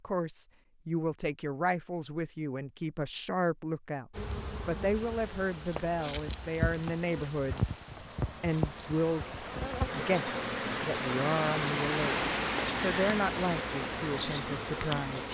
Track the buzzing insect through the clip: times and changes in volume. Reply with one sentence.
You can hear the buzzing insect from 4.1 to 15.2 s, getting louder.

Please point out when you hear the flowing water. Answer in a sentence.
The flowing water can be heard from 4.9 to 15.2 s.